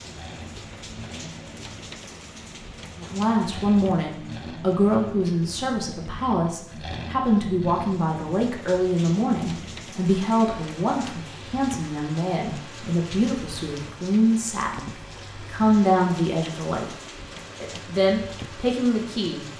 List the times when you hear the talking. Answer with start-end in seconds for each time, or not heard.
3.0-16.9, 17.6-19.4.